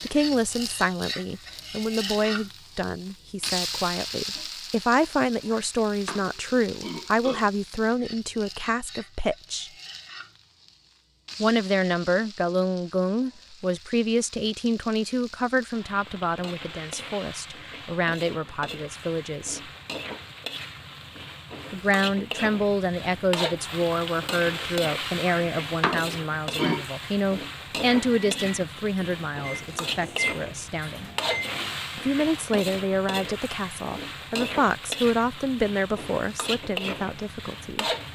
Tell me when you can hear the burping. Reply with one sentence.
You can hear the burping from 5.5 to 7.5 s and from 25.2 to 26.9 s.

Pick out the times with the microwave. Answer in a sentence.
The microwave can be heard from 27.9 to 31.9 s.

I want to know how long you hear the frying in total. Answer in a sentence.
You can hear the frying for 38 seconds altogether.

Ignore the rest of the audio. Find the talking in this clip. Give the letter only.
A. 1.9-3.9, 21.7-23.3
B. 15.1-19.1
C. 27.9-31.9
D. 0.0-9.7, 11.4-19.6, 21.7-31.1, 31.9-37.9
D.